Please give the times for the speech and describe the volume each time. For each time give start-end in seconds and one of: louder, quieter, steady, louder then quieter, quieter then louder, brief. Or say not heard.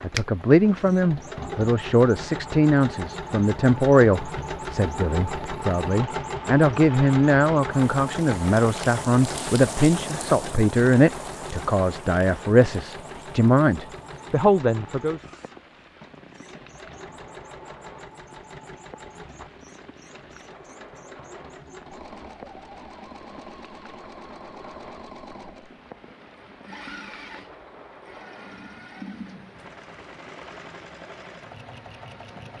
0.0-15.2 steady.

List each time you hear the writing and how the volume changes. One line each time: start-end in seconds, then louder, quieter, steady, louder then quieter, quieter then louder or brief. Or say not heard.
not heard.